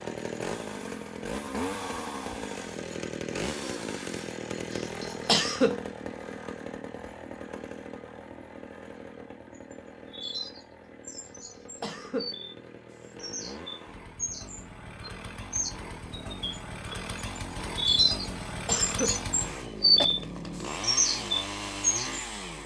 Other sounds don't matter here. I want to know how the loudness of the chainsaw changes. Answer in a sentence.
The loudness of the chainsaw goes down, then up.